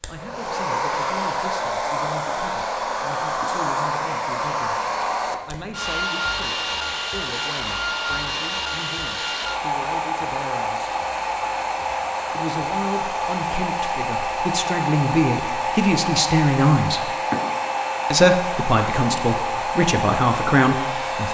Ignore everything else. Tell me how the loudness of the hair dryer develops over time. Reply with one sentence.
The volume of the hair dryer stays about the same.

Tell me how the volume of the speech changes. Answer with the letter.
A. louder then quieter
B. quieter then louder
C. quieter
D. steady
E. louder
E.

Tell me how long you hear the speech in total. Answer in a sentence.
The speech can be heard for 18 seconds in total.